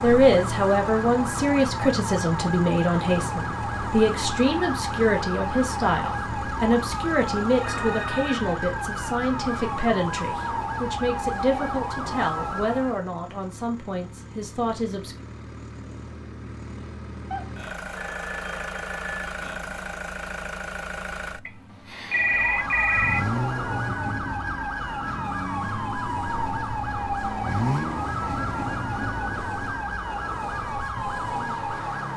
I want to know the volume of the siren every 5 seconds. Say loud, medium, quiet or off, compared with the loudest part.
loud, loud, loud, off, loud, loud, loud.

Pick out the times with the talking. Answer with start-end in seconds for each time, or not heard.
0.0-15.2.